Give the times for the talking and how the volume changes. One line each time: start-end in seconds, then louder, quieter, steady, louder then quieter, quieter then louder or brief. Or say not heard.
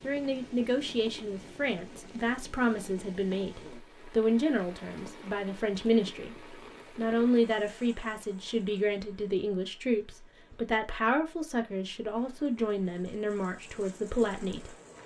0.0-14.8 steady.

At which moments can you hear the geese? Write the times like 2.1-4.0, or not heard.
not heard.